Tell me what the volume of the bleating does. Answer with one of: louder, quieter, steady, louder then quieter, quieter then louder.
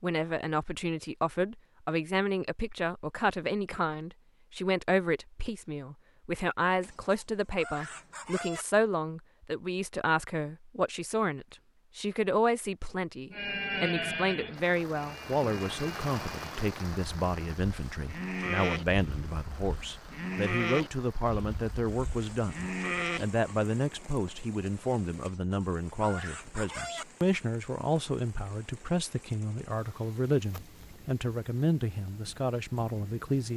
quieter then louder.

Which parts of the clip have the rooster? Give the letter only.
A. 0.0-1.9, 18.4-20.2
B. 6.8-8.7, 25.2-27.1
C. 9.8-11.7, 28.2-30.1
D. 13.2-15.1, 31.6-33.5
B.